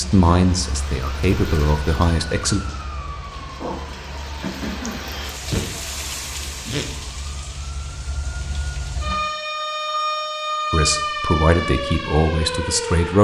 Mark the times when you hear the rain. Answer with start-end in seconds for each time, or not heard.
0.0-9.4.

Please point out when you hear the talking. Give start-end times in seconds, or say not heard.
0.0-2.6, 10.7-13.1.